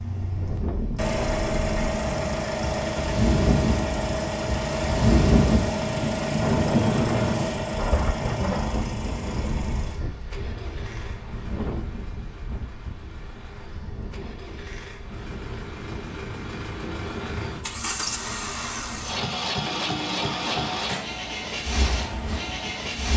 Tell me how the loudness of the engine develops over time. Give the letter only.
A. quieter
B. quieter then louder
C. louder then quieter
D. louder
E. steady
B.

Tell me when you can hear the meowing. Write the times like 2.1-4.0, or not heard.
19.6-20.8.